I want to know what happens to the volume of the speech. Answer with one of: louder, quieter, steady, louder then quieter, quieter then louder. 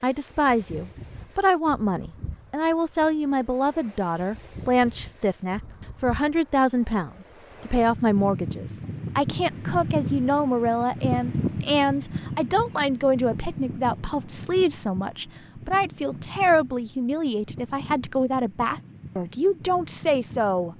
steady.